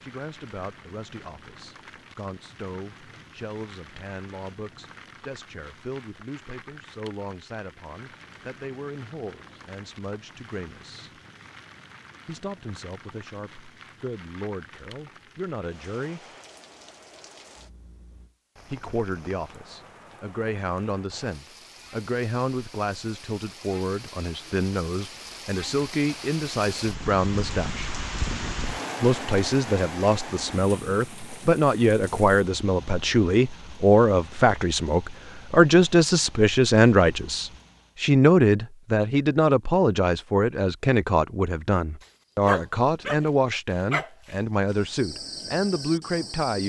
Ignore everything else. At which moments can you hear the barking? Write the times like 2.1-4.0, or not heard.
42.0-43.3, 43.9-46.6.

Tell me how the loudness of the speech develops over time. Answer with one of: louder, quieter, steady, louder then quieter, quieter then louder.
louder.